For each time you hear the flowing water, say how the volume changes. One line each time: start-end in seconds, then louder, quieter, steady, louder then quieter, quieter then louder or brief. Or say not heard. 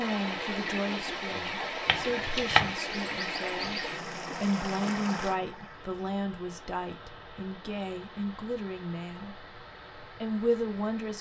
0.0-11.1 quieter.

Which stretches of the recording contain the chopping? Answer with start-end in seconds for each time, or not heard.
1.9-2.8.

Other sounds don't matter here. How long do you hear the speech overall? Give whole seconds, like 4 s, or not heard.
10 s.